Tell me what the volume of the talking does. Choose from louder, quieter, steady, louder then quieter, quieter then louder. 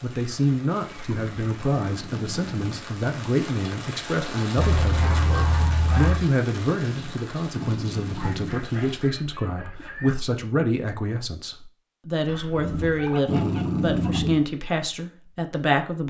steady.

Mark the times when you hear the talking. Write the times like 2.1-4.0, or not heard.
0.0-16.0.